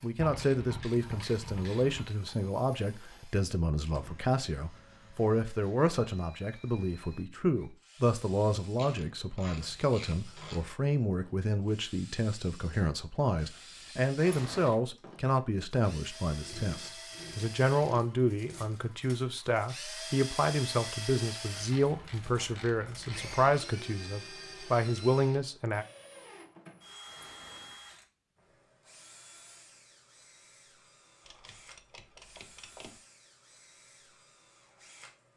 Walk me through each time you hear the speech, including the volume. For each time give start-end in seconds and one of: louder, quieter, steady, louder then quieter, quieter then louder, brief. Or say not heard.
0.0-25.9 steady.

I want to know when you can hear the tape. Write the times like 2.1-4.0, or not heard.
not heard.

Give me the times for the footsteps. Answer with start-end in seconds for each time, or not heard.
not heard.